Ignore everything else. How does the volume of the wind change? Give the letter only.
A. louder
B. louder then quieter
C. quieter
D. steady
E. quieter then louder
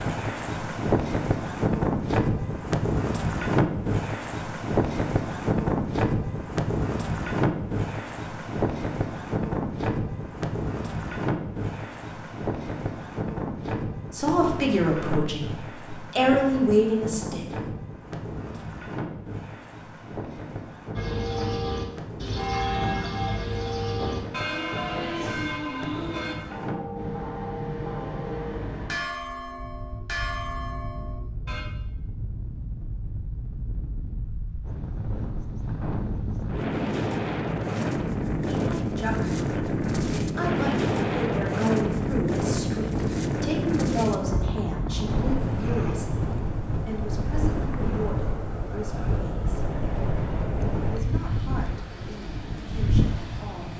E.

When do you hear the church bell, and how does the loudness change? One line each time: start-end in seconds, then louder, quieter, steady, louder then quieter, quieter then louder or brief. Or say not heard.
20.9-31.6 quieter.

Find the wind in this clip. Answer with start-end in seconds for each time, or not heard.
0.0-53.7.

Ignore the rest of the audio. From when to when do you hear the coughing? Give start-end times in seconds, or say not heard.
not heard.